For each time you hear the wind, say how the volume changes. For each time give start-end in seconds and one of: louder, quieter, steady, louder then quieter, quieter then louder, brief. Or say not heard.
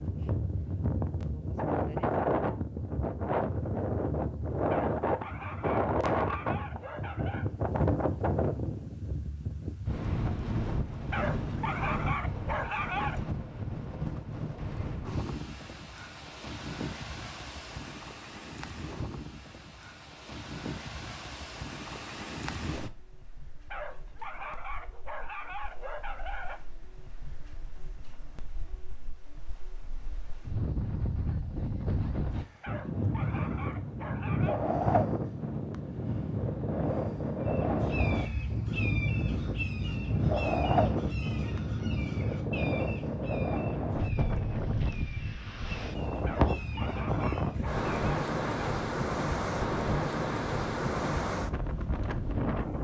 0.0-52.7 quieter then louder.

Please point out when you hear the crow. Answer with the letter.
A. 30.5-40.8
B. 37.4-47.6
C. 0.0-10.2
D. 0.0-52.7
B.